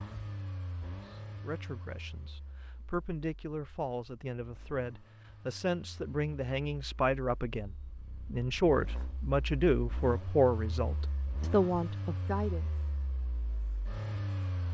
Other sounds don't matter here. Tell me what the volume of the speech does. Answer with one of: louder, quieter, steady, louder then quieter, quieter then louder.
louder.